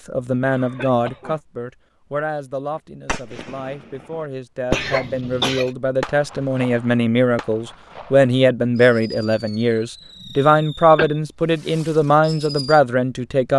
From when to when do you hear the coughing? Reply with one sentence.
The coughing can be heard from 0.5 to 1.4 s, from 4.7 to 5.7 s and from 10.2 to 11.1 s.